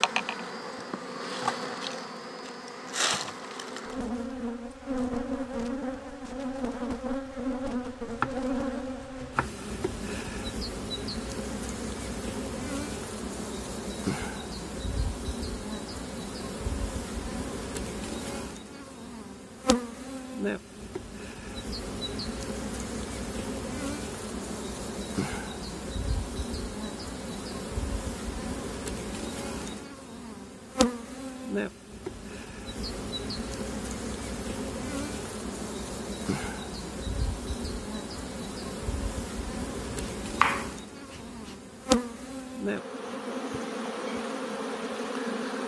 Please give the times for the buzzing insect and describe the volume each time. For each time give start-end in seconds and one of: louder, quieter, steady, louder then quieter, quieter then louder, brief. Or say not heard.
0.0-45.6 steady.